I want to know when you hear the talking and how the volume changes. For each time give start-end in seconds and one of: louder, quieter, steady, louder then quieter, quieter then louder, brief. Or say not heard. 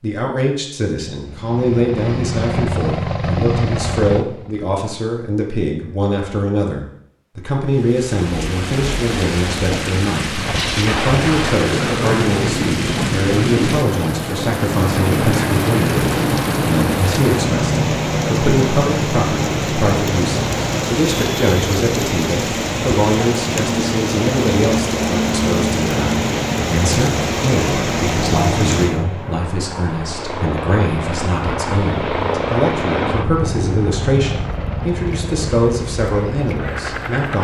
0.0-37.3 steady.